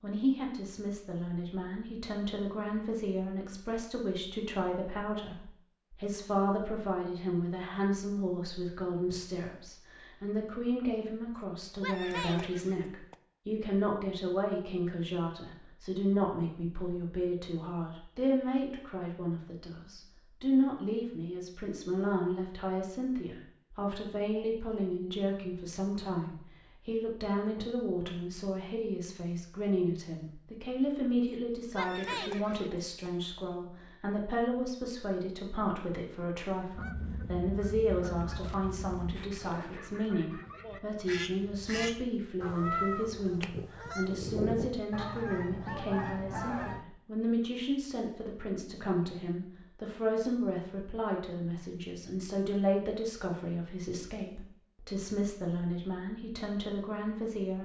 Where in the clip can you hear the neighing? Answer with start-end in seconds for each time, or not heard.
11.3-13.2, 31.2-33.1.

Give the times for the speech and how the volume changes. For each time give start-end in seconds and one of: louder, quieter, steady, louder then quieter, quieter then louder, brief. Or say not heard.
0.0-57.6 steady.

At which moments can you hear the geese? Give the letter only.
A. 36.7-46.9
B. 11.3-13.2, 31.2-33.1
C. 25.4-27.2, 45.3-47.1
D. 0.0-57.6
A.